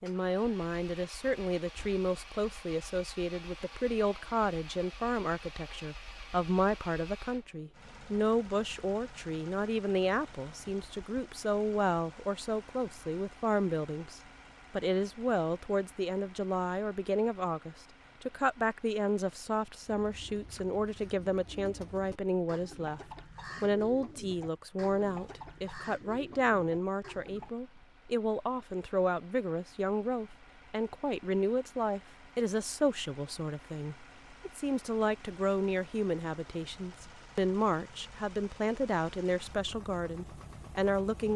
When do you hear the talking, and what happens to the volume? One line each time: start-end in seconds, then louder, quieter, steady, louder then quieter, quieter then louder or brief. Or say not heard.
0.0-23.0 steady
23.6-41.3 steady.